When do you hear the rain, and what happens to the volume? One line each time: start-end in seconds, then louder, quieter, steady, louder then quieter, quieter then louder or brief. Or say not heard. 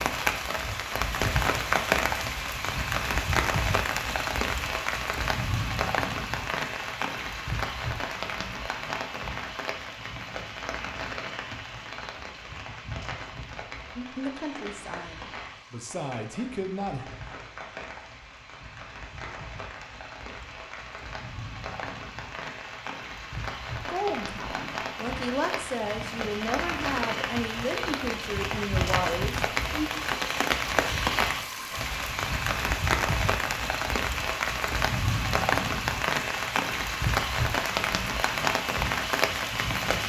0.0-40.0 quieter then louder.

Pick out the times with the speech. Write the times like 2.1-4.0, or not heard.
13.9-17.1, 23.9-29.9.